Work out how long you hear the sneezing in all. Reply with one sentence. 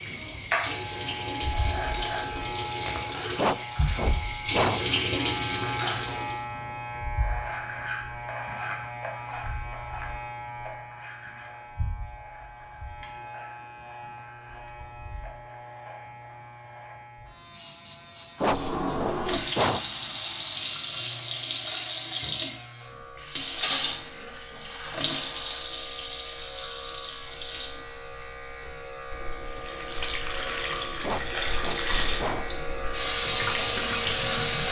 You can hear the sneezing for 4 seconds altogether.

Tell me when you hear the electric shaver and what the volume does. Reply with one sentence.
The electric shaver can be heard from 0.0 to 34.6 s, getting quieter then louder.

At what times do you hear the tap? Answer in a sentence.
The tap can be heard from 0.0 to 6.5 s and from 18.4 to 34.6 s.